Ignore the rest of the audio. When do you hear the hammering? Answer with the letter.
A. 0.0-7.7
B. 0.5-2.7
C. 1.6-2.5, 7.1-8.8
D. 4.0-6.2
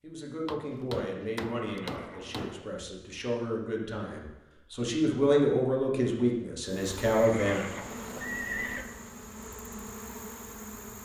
B.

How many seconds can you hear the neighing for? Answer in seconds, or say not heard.
3 s.